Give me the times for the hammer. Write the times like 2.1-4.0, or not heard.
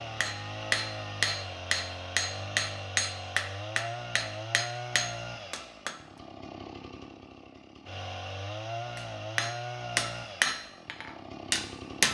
0.2-6.0, 8.9-12.0.